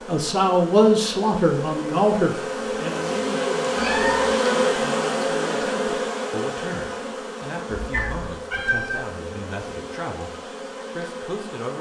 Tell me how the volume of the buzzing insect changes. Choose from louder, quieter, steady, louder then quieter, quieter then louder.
louder then quieter.